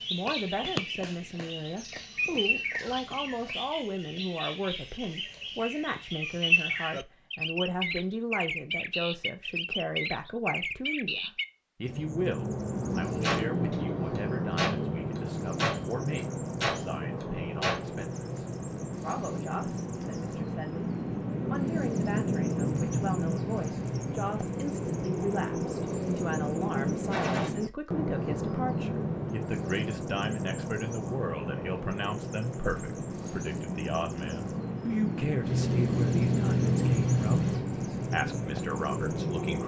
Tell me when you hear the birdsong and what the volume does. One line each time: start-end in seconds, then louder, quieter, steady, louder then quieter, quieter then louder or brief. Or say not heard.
0.0-39.6 steady.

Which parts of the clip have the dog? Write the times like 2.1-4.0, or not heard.
not heard.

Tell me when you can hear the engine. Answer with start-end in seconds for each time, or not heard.
35.4-37.6.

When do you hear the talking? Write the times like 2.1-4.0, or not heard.
0.1-39.6.